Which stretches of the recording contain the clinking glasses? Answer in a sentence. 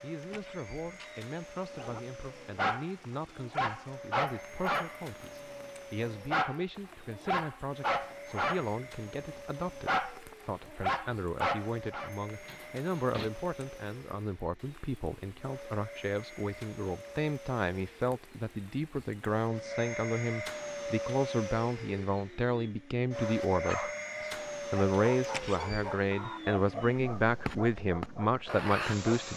The clinking glasses can't be heard in this clip.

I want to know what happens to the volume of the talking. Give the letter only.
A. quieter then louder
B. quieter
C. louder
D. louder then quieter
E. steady
C.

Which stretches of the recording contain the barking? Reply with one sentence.
The barking can be heard from 1.8 to 12.1 s and from 23.1 to 29.3 s.